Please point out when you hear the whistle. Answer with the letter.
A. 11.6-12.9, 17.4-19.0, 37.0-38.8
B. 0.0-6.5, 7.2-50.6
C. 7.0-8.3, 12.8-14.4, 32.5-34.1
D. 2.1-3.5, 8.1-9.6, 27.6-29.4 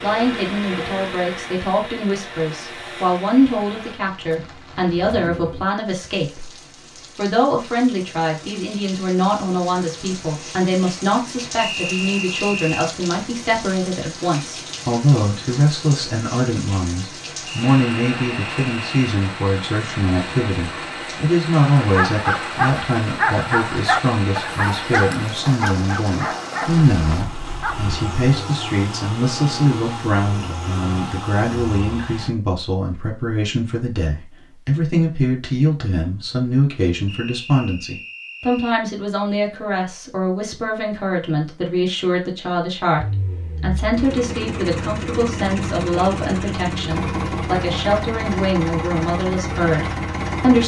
A.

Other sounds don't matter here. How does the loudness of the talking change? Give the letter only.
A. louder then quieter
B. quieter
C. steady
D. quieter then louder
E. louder
C.